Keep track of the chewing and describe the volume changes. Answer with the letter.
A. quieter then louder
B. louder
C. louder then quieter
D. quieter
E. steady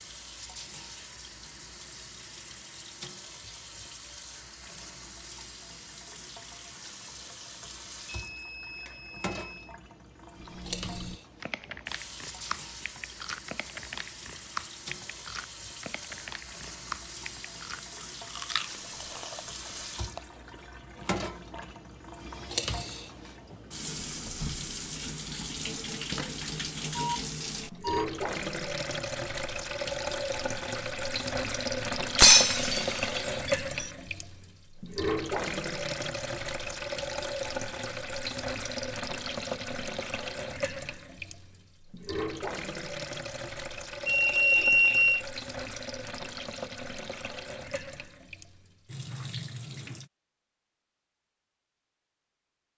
D.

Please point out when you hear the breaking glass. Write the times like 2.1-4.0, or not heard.
32.1-33.9.